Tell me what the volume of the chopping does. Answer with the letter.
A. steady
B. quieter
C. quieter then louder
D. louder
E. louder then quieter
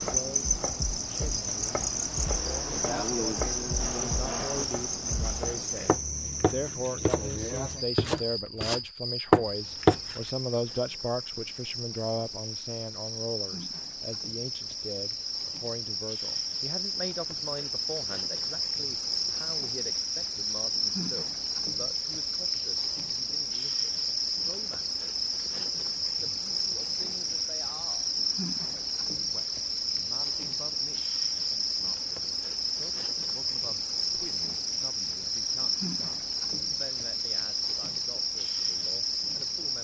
D.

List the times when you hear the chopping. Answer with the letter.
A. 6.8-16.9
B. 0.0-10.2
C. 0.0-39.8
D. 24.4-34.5
B.